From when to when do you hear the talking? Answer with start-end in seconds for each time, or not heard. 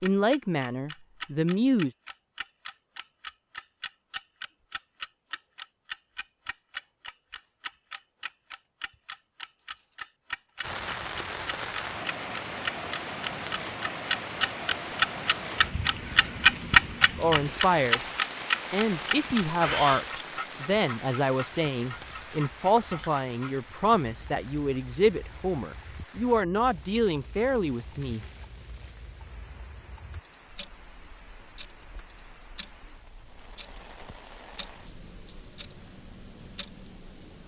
0.0-1.9, 17.1-18.1, 18.7-28.2.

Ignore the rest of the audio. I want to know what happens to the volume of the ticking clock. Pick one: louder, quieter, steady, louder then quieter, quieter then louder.
louder then quieter.